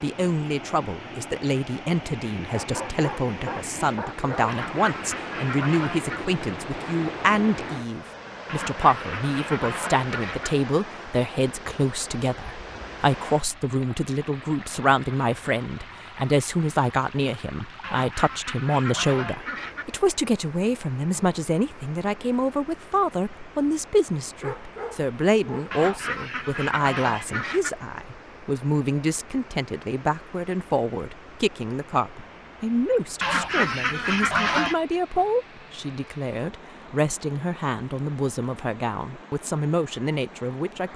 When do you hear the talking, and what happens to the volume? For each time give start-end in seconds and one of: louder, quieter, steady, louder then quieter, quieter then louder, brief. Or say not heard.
0.0-40.9 steady.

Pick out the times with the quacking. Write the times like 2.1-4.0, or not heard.
4.5-6.2, 8.4-10.5, 17.8-19.9, 25.7-27.7, 33.2-34.8.